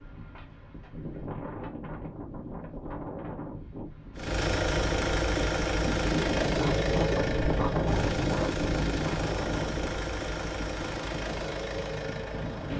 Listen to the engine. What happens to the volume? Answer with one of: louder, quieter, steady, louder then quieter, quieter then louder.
quieter.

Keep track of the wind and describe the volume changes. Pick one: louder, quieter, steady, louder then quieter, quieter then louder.
louder then quieter.